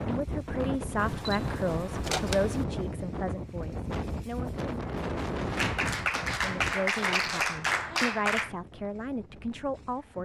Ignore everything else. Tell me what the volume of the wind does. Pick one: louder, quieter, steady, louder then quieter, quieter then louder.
quieter.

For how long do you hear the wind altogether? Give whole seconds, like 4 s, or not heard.
10 s.